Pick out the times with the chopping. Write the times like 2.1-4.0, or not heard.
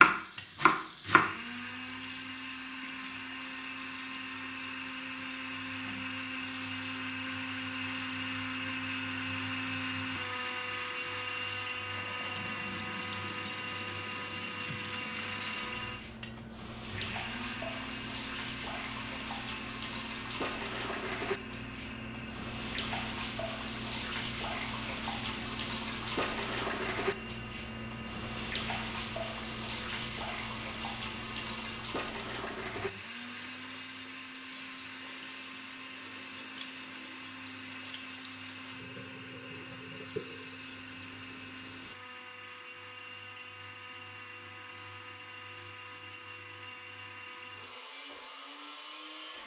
0.0-1.3.